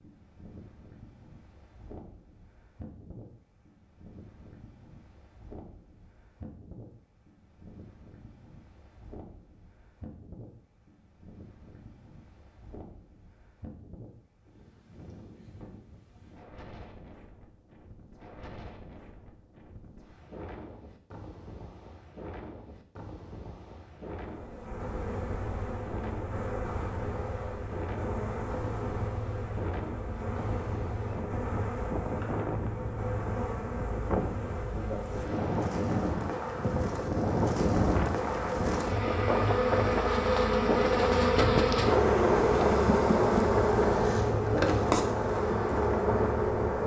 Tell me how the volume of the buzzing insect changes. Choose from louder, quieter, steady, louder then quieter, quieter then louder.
louder.